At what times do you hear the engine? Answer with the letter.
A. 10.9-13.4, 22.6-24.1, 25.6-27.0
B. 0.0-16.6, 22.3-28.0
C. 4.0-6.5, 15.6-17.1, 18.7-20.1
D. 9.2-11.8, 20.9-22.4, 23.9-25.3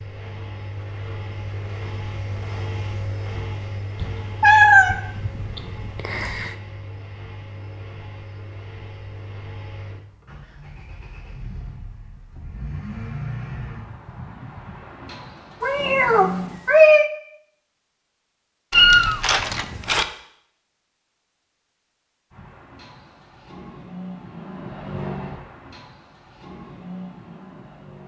B.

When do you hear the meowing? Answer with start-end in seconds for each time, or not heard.
4.0-6.5, 15.6-17.1, 18.7-20.1.